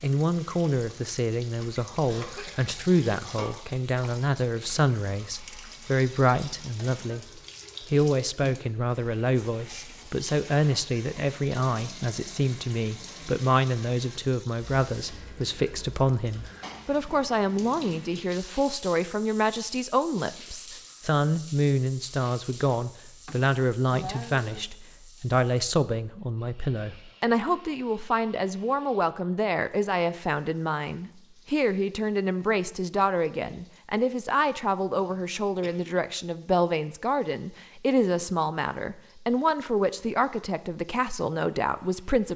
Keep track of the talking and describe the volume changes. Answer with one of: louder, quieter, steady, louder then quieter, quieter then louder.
steady.